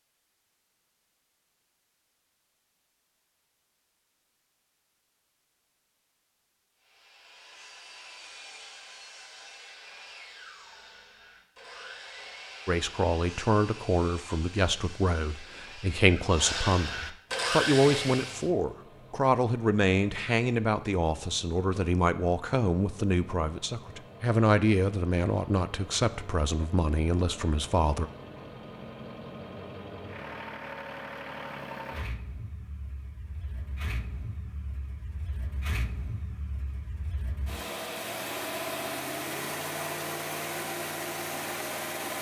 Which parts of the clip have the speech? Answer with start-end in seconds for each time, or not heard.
12.7-28.1.